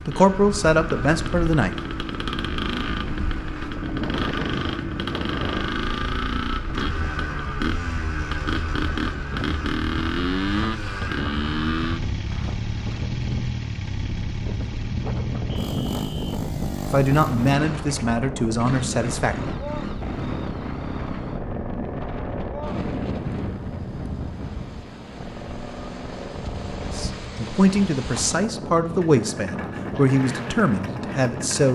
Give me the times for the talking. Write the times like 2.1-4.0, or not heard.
0.1-2.1, 16.9-19.4, 26.8-31.6.